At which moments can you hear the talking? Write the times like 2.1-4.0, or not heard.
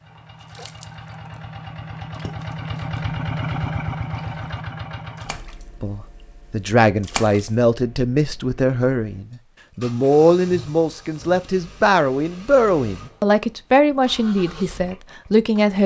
5.8-15.8.